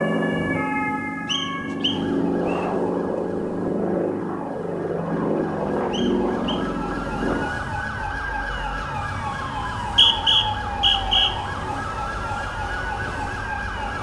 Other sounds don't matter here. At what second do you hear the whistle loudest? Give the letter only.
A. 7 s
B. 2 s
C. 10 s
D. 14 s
C.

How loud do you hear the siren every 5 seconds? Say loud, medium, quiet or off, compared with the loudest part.
medium, loud, loud.